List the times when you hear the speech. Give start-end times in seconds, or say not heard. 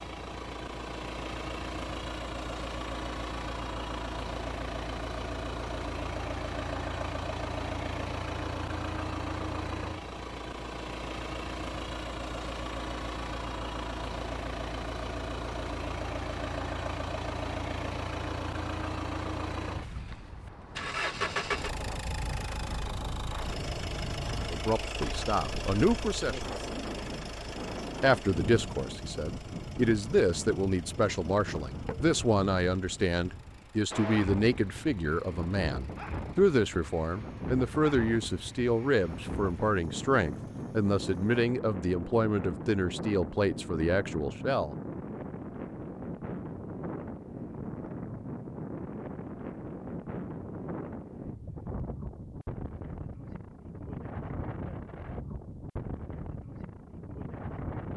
24.4-26.4, 28.0-44.8.